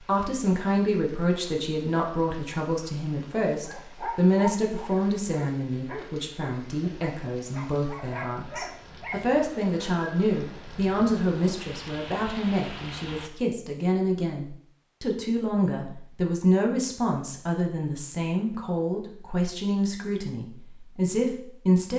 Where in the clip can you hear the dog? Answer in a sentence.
You can hear the dog from 3.6 to 9.2 s.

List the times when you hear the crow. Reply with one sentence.
The crow can't be heard in this clip.